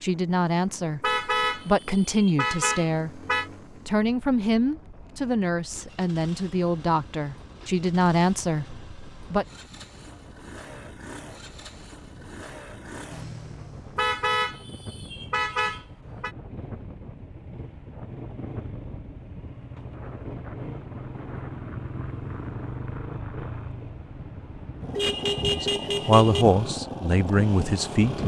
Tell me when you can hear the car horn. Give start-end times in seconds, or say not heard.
1.0-3.5, 13.9-16.3, 24.9-26.4.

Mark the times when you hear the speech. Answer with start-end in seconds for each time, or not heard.
0.0-3.2, 3.9-9.4, 25.5-28.2.